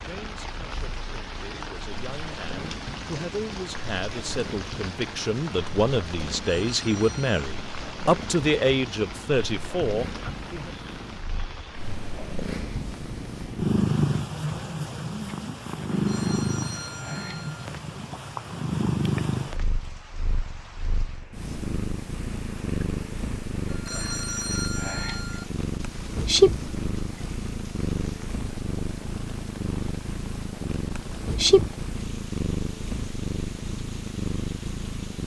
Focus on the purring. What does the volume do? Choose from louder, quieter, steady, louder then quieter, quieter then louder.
louder.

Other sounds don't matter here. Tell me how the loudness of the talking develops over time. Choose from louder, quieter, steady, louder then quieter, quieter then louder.
louder.